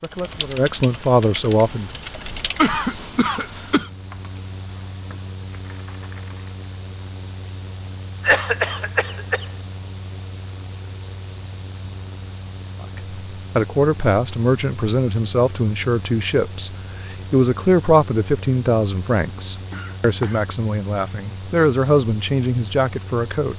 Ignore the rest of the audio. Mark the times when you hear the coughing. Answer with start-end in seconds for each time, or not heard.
2.5-3.9, 8.2-9.4, 19.7-20.4.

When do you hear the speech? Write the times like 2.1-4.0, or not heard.
0.0-1.9, 12.8-23.5.